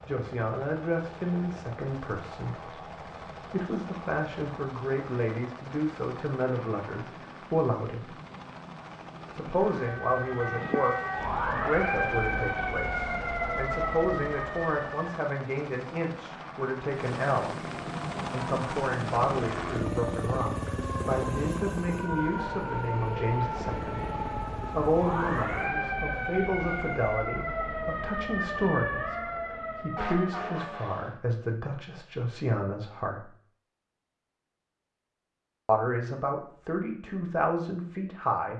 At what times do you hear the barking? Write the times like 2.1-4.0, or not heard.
not heard.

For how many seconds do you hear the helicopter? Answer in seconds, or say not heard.
26 s.